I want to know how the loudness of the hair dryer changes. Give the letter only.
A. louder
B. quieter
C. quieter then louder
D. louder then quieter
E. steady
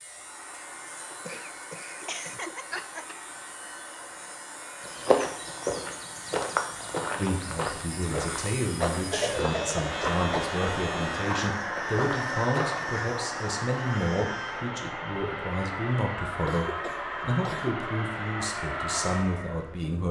A.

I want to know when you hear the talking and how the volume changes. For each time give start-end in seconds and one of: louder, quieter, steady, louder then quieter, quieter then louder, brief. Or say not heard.
7.2-20.0 steady.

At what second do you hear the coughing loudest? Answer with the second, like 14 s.
9 s.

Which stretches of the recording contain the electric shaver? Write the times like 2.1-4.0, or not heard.
0.0-14.7.